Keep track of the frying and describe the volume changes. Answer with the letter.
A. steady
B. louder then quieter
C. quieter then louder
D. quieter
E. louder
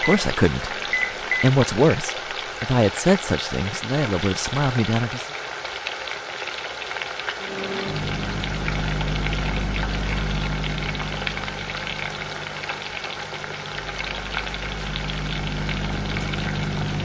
A.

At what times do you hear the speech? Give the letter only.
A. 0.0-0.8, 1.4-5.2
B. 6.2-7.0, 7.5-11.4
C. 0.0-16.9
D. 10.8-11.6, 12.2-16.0
A.